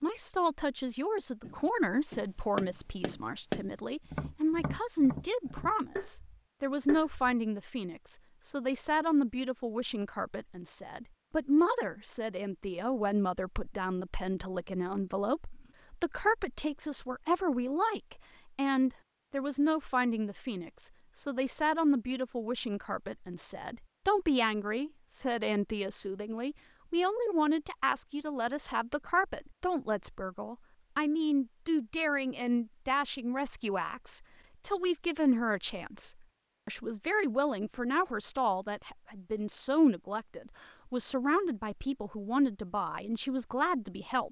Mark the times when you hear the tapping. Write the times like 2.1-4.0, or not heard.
1.4-7.3.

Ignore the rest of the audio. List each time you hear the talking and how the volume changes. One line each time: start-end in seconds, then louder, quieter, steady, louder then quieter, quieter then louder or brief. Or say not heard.
0.0-44.2 steady.